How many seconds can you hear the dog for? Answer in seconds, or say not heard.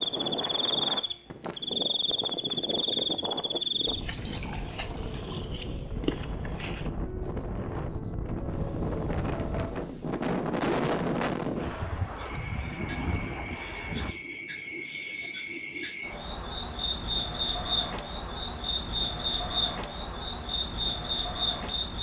not heard.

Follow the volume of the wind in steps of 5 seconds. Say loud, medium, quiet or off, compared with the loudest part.
medium, loud, loud, off, off.